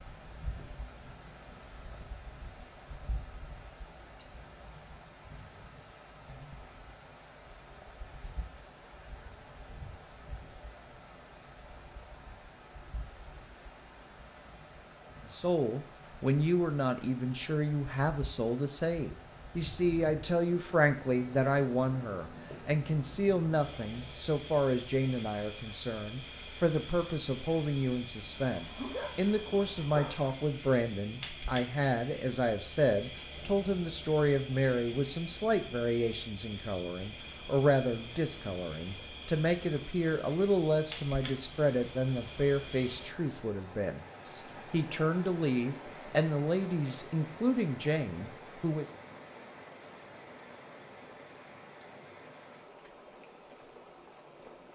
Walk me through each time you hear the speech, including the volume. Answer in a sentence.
You can hear the speech from 15.3 to 48.9 s, at a steady volume.